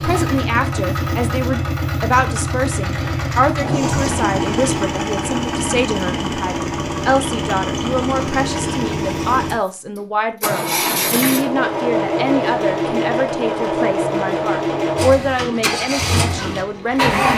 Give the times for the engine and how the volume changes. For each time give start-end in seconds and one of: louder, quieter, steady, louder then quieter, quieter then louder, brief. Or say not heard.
0.0-17.3 steady.